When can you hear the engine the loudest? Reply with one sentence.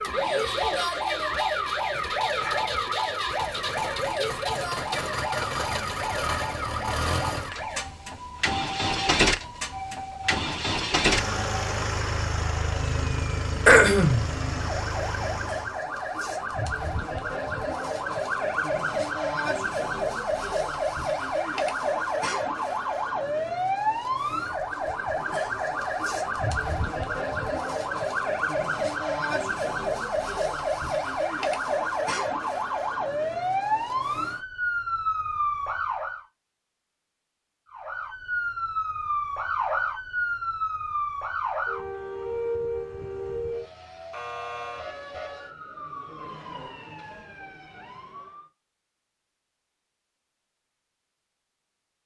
The volume of the engine peaks at 9 seconds.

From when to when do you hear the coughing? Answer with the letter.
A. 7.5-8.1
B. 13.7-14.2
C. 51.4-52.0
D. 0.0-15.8
B.